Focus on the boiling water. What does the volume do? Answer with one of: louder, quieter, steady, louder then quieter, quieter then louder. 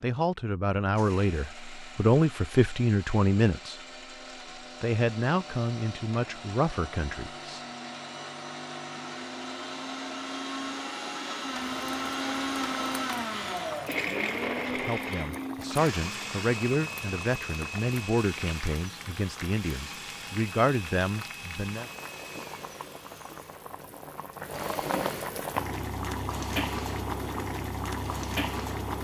louder.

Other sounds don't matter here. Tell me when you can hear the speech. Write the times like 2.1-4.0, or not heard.
0.0-3.8, 4.8-7.6, 14.7-21.9.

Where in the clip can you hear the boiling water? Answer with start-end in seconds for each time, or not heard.
11.4-28.9.